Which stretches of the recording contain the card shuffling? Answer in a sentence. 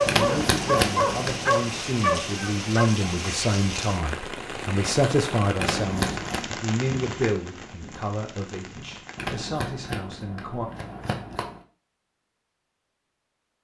The card shuffling can be heard from 0.1 to 1.5 s, from 5.5 to 6.5 s and from 9.2 to 11.6 s.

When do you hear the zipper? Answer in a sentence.
The zipper can't be heard in this clip.